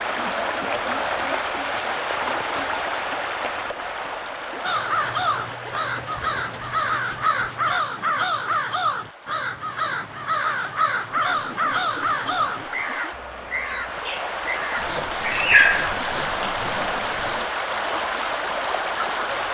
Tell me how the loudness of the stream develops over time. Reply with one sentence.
The loudness of the stream goes down, then up.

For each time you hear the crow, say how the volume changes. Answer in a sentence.
You can hear the crow from 4.6 to 15.9 s, at a steady volume.